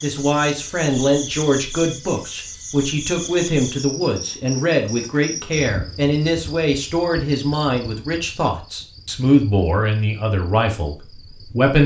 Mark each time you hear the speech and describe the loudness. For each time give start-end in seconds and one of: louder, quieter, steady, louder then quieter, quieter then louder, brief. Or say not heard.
0.0-11.8 steady.